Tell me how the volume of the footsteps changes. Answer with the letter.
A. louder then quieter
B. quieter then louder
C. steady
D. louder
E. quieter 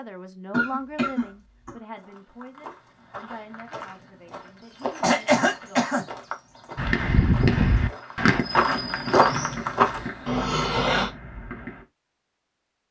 D.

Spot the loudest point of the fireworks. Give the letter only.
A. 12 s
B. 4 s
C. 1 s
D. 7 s
D.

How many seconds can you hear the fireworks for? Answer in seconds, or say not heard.
5 s.